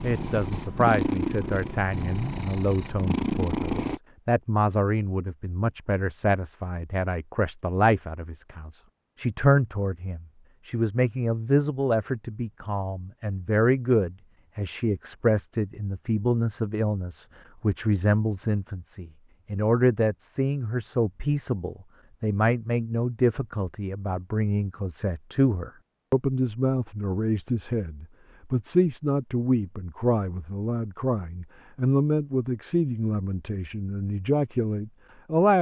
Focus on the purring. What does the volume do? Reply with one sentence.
The loudness of the purring goes down, then up.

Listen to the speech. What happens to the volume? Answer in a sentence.
The volume of the speech stays about the same.